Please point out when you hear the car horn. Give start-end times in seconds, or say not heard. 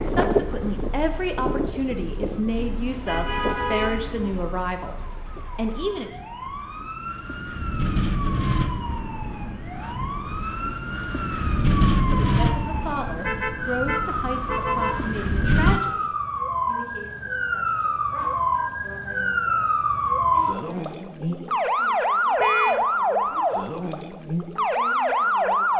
2.5-4.5, 13.2-15.0, 22.4-22.9.